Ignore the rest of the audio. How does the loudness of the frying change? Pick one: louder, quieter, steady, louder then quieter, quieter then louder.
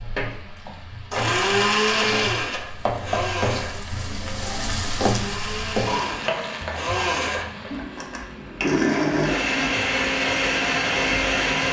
louder then quieter.